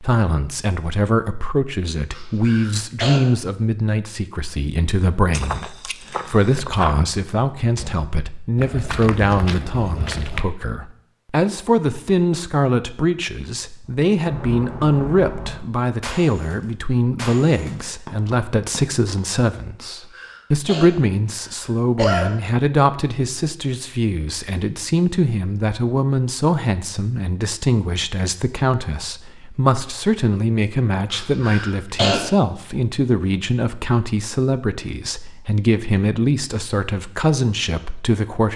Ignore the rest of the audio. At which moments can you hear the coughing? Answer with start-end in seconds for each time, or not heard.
2.1-3.2, 19.8-22.3, 31.1-32.2.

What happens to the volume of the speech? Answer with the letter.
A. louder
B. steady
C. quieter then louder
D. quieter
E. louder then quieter
B.